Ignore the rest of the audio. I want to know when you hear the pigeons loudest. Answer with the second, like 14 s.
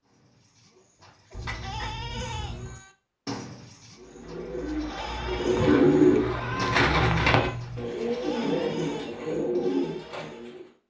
6 s.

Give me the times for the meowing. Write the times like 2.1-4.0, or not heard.
1.3-2.8, 6.0-7.9.